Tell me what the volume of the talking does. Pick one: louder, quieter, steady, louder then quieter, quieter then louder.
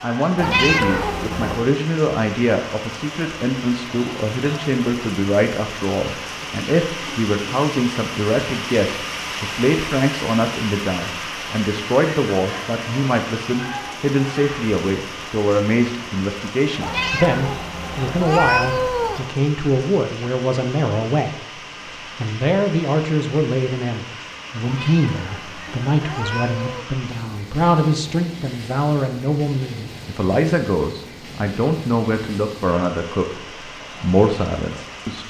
steady.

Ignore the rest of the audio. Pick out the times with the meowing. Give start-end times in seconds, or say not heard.
0.3-1.7, 16.8-19.4, 24.6-26.9.